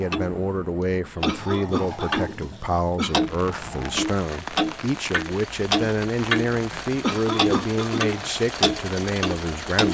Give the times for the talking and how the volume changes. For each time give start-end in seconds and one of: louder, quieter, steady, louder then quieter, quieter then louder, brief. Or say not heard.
0.0-9.9 steady.